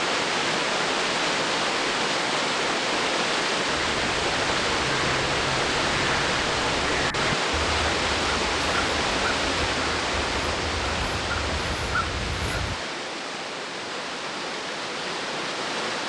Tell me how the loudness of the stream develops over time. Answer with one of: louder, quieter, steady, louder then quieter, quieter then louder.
quieter.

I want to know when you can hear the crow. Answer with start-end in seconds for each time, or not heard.
3.8-12.8.